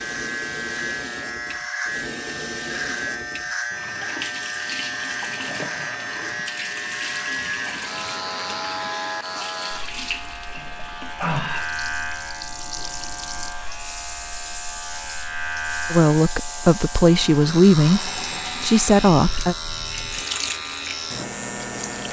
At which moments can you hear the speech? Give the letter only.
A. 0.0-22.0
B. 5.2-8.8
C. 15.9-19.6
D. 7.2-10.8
C.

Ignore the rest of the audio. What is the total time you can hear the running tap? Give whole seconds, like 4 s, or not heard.
22 s.